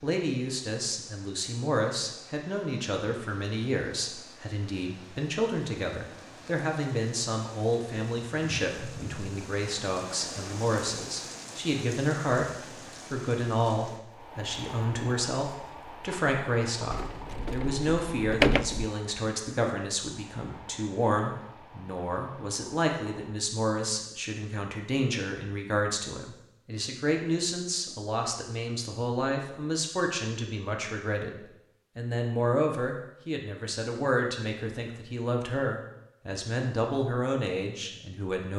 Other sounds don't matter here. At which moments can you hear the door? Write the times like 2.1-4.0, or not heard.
16.9-18.9.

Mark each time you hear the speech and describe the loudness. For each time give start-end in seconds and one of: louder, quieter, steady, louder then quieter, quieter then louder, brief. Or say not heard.
0.0-38.5 steady.